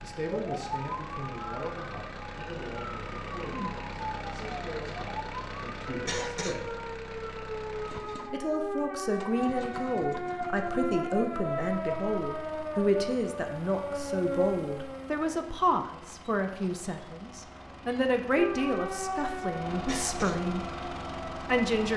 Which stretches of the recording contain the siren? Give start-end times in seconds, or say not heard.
0.1-15.4, 18.4-21.9.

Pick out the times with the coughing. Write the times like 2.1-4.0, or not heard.
6.0-6.6, 19.9-20.4.